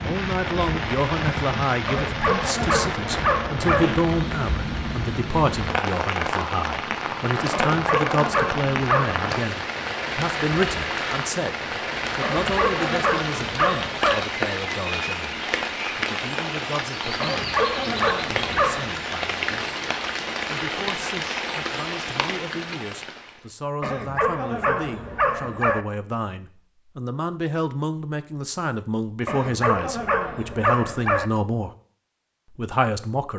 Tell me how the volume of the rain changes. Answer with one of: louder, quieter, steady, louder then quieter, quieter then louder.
steady.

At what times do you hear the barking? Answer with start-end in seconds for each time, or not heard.
1.9-3.9, 7.5-9.2, 12.2-14.2, 17.2-18.9, 23.8-25.9, 29.2-31.3.